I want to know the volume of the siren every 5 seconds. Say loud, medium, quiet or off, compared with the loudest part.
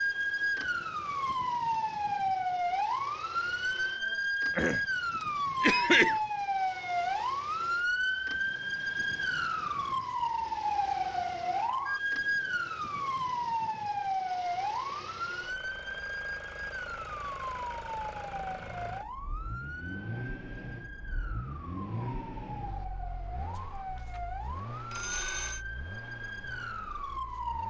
loud, loud, loud, medium, quiet, medium.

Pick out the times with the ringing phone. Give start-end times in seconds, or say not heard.
23.6-24.2, 24.9-25.6.